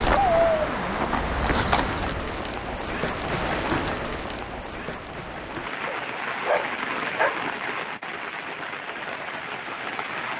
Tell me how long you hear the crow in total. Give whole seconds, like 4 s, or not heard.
not heard.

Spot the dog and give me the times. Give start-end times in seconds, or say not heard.
0.1-1.1, 5.8-7.4.